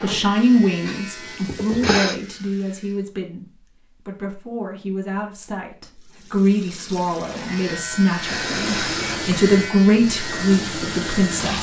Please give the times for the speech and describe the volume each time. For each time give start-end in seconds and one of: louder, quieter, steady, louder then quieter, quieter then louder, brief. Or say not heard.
0.0-11.5 quieter then louder.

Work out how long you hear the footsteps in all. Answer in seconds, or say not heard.
not heard.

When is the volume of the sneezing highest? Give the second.
2 s.